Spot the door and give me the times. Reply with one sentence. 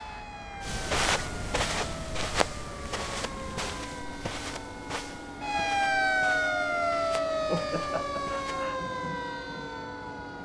The door can't be heard in this clip.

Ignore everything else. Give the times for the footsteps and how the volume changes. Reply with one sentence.
The footsteps can be heard from 0.6 to 8.7 s, getting quieter.